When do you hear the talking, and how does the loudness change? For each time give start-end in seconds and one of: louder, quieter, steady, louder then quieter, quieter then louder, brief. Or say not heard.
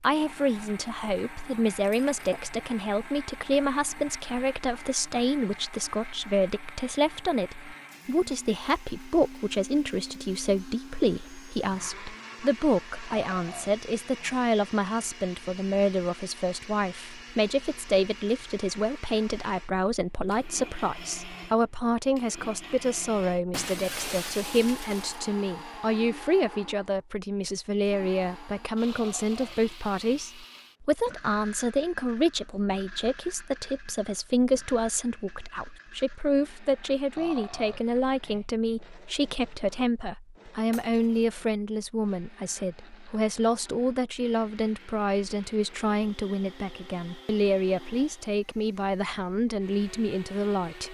0.0-50.8 steady.